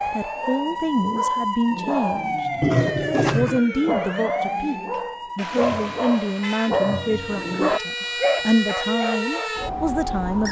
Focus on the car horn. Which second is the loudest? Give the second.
3 s.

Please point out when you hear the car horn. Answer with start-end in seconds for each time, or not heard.
2.6-3.6, 5.3-6.8.